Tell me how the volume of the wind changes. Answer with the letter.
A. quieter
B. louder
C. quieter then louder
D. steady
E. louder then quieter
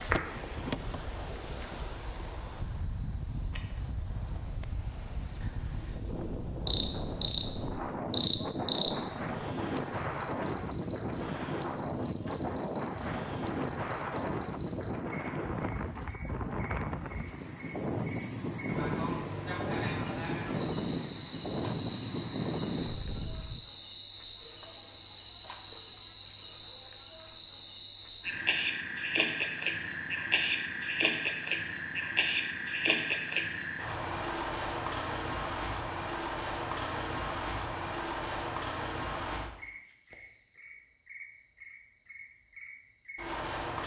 B.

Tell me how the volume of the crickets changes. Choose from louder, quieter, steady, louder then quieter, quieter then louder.
steady.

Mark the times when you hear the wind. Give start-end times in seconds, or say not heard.
0.0-23.6.